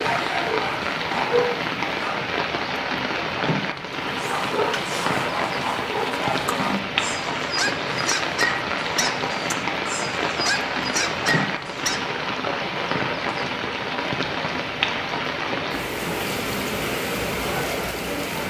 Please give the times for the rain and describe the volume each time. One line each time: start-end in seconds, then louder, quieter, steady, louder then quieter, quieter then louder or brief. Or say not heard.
0.0-18.4 steady.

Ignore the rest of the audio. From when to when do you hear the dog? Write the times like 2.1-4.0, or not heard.
0.0-2.2, 4.0-12.1.